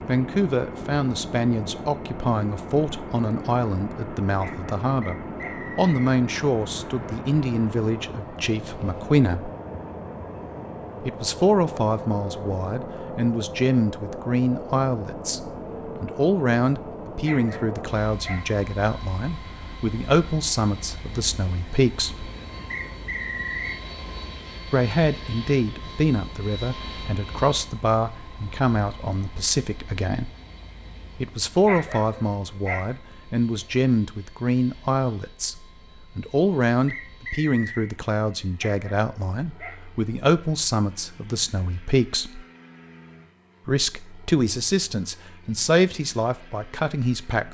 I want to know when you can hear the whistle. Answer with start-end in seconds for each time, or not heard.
5.0-6.1, 22.7-23.8, 36.9-37.9.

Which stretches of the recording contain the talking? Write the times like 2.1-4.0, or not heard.
0.1-9.5, 11.0-22.3, 24.7-30.3, 31.1-42.5, 43.6-47.4.